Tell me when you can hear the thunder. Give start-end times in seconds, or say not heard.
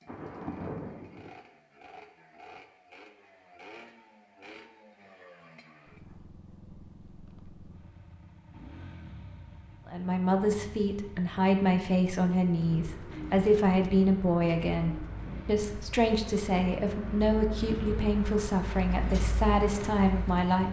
0.1-1.3.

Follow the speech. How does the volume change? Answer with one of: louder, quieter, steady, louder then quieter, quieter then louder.
steady.